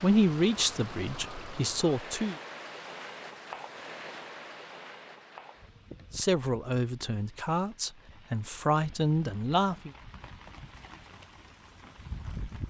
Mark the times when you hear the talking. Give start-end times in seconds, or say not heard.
0.0-2.4, 6.1-9.9.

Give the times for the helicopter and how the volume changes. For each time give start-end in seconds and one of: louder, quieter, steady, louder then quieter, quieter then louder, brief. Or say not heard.
not heard.